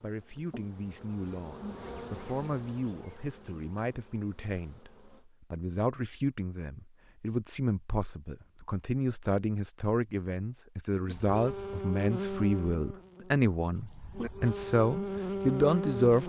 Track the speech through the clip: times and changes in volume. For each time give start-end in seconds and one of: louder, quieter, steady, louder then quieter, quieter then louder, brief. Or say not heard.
0.0-16.2 louder.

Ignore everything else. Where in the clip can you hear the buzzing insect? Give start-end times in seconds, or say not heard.
0.0-5.3, 11.1-16.2.